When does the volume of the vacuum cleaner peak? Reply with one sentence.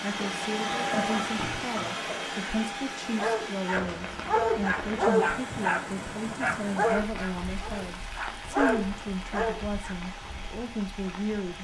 The loudest moment of the vacuum cleaner is at 1 second.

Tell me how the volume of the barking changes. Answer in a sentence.
The volume of the barking goes down, then up.